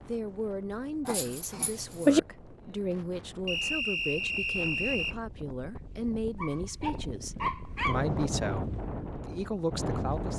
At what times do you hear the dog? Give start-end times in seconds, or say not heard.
1.1-2.2, 6.3-8.1.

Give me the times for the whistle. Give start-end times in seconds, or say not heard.
3.5-5.2.